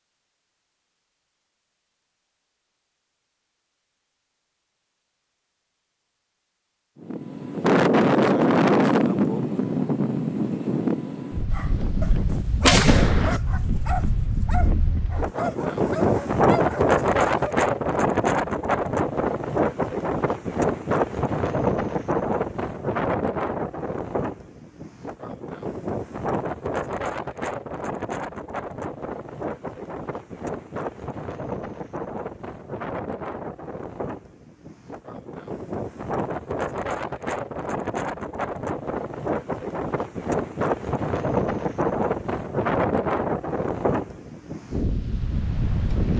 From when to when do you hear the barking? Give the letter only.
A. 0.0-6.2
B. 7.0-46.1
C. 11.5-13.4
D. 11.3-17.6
D.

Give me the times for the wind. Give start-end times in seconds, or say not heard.
7.0-46.1.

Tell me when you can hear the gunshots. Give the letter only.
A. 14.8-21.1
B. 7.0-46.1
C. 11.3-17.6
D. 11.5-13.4
D.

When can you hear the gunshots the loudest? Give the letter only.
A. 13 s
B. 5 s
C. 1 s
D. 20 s
A.